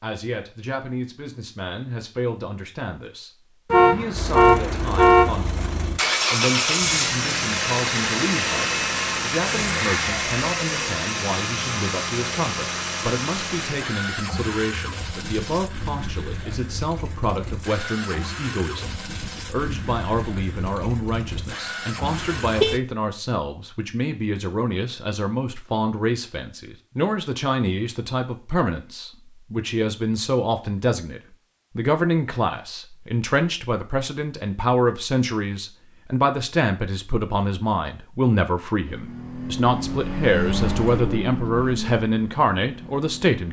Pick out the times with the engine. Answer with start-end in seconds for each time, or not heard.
4.1-22.8, 38.9-43.4.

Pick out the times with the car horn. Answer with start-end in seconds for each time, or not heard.
3.7-5.3, 22.0-22.8.